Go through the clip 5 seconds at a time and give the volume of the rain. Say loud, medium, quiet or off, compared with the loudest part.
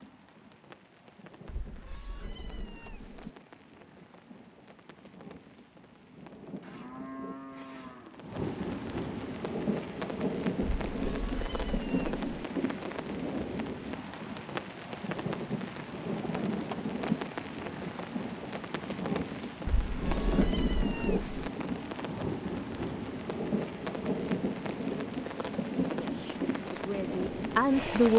quiet, medium, loud, loud, loud, loud.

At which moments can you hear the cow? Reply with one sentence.
You can hear the cow from 6.6 to 8.2 s.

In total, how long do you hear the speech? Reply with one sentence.
You can hear the speech for 2 seconds altogether.